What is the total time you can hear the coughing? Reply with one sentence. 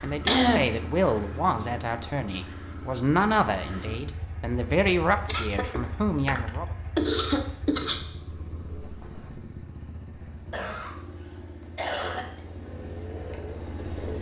The coughing can be heard for 4 seconds in total.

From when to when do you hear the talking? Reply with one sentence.
The talking can be heard from 0.0 to 6.7 s.